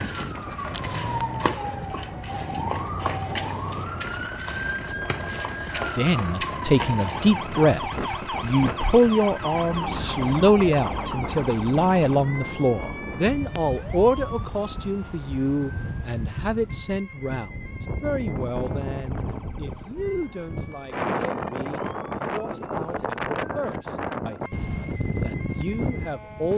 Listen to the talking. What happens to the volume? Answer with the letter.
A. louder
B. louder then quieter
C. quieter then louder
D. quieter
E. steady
D.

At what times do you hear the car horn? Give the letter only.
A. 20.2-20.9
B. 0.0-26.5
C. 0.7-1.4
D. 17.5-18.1
C.